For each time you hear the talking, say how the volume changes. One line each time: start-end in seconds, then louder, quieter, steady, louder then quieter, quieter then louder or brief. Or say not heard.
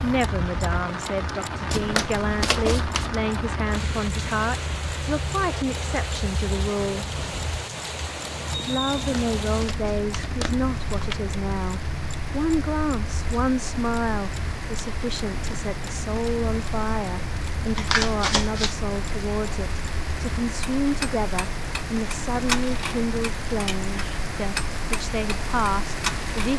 0.0-7.0 steady
8.6-26.5 steady.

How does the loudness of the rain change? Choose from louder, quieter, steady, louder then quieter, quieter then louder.
steady.